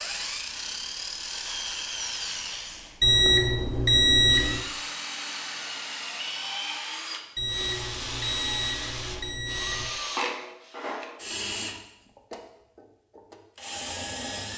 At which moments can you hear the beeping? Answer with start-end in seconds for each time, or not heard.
3.0-4.6, 7.3-9.9.